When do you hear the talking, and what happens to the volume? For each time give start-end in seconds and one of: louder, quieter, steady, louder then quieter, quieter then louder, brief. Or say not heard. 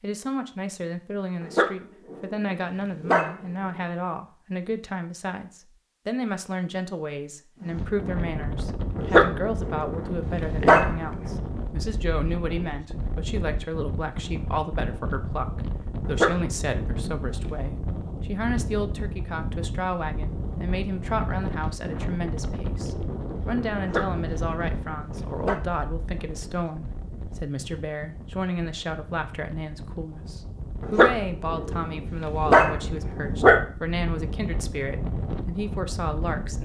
0.0-36.6 steady.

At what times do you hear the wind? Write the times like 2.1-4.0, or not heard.
7.6-36.6.